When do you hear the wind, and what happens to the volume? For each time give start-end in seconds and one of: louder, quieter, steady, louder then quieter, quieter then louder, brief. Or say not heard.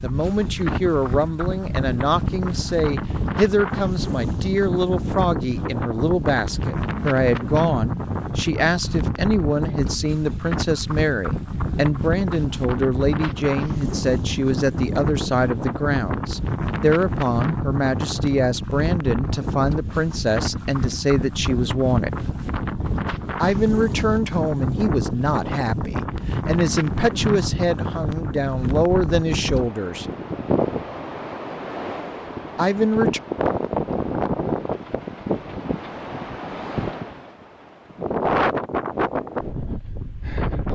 0.0-40.7 steady.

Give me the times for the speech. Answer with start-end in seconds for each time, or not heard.
0.0-22.1, 23.4-30.1, 32.5-33.2.